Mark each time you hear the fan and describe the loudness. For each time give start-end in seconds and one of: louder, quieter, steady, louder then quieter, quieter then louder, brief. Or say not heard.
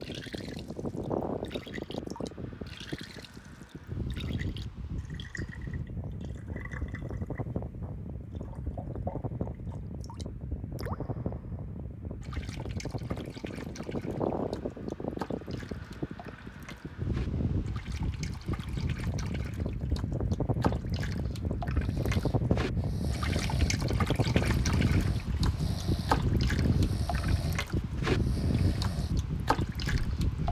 0.0-30.4 louder.